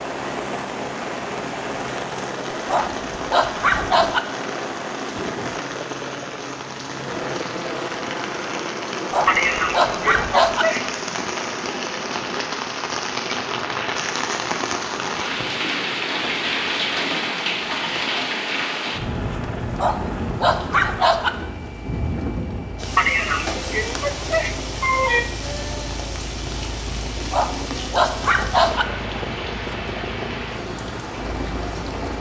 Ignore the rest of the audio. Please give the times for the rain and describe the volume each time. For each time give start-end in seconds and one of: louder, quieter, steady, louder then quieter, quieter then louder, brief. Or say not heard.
0.0-32.1 louder then quieter.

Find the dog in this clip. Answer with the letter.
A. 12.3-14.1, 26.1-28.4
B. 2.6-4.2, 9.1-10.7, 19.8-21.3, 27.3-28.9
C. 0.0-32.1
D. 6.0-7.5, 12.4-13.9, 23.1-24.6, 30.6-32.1
B.